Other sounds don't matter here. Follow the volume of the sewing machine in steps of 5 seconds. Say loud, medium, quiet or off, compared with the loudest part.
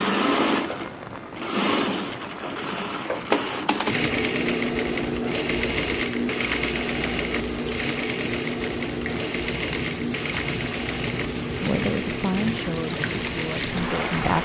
loud, loud, medium.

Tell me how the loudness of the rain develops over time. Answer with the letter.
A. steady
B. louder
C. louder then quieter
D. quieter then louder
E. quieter
B.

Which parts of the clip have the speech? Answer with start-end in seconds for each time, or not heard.
11.6-14.4.